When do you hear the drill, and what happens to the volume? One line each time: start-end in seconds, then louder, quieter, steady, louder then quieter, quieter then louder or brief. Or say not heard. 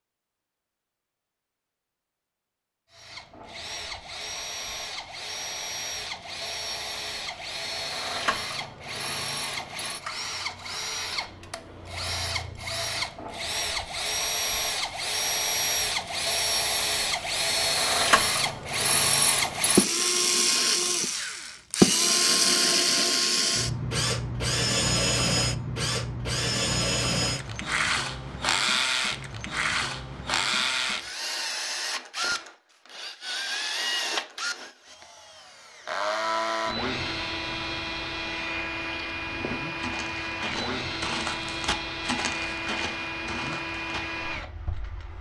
2.9-45.1 louder then quieter.